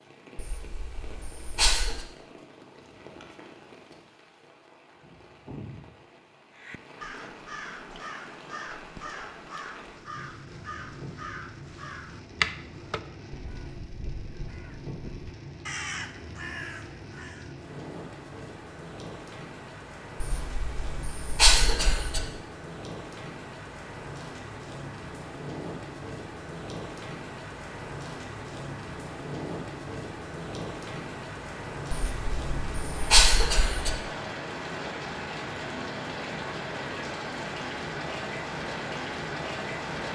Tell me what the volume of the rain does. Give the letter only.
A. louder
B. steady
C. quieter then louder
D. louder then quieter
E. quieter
A.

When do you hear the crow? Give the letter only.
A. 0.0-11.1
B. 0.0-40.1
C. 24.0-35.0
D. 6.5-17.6
D.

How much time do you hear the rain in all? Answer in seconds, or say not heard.
40 s.